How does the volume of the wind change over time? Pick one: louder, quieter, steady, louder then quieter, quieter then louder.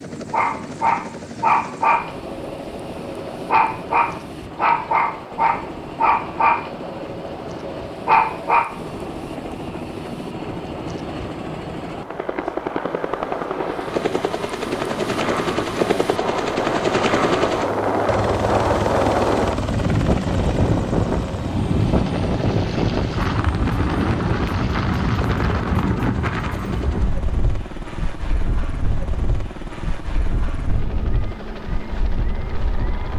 louder then quieter.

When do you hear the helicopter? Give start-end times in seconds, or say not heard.
0.0-33.1.